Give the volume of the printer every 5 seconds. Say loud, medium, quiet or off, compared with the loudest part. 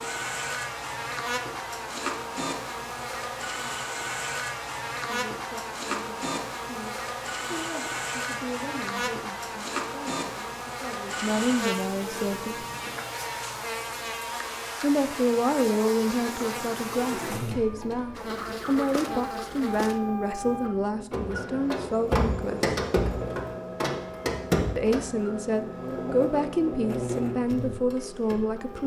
medium, medium, medium, medium, loud, medium.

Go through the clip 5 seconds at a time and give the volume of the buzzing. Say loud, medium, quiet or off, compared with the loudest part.
loud, loud, loud, loud, medium, loud.